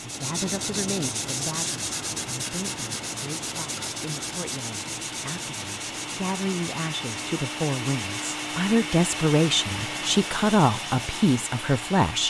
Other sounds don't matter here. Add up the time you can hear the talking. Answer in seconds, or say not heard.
12 s.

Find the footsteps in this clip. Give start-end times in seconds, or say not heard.
not heard.